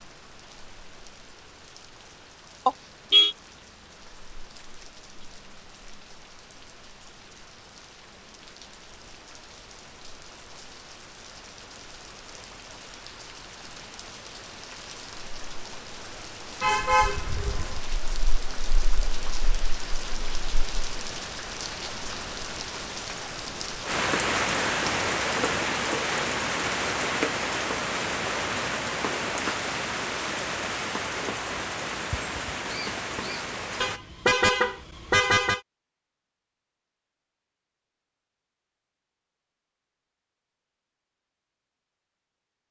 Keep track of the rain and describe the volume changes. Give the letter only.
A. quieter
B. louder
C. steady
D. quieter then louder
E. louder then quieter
B.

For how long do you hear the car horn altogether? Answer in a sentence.
You can hear the car horn for 4 seconds altogether.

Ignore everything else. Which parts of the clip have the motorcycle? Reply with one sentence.
The motorcycle can't be heard in this clip.